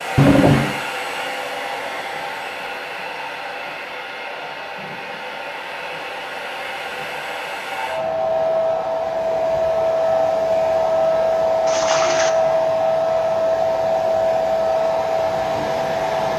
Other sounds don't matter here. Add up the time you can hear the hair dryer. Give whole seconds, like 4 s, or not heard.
16 s.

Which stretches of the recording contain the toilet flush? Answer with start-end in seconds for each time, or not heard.
0.1-0.8, 11.7-12.3.